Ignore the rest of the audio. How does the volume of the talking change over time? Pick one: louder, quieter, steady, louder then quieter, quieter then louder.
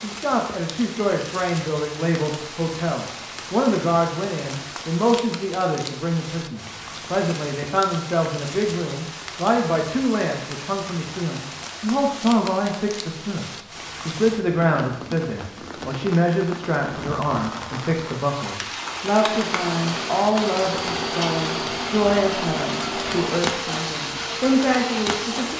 steady.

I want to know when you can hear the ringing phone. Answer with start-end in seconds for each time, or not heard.
not heard.